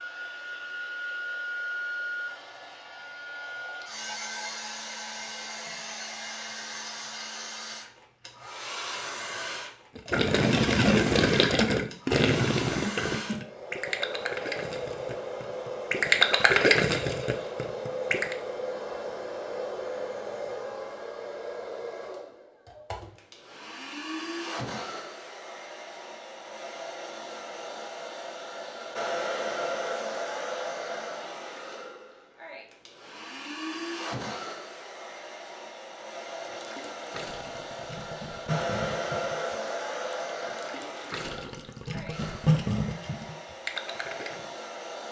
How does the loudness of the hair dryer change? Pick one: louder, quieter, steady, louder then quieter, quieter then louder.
steady.